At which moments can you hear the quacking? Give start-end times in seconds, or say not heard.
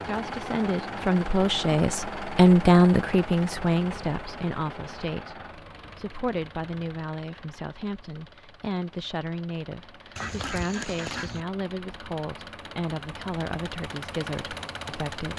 10.2-11.4.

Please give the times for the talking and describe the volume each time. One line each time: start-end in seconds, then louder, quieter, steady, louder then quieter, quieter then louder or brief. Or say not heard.
0.1-15.3 quieter.